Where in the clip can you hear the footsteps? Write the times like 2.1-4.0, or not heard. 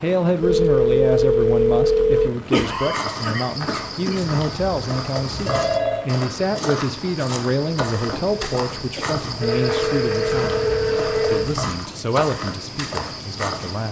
2.7-13.8.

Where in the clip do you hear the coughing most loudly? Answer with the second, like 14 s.
3 s.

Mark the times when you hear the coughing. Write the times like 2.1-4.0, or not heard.
2.5-4.2, 7.9-9.2.